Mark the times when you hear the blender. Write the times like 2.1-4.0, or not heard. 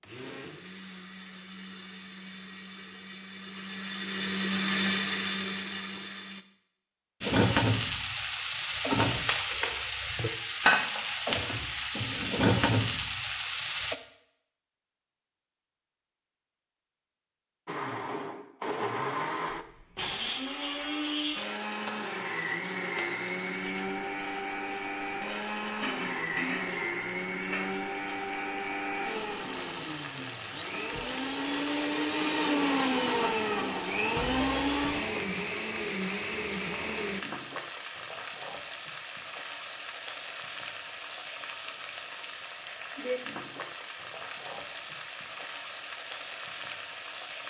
0.0-6.5, 17.6-37.2.